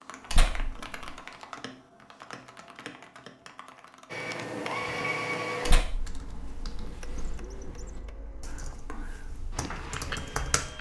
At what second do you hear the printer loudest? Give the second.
5 s.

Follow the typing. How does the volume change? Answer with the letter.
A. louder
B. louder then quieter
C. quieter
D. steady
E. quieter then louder
E.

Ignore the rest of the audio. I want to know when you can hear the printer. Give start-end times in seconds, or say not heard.
4.0-10.7.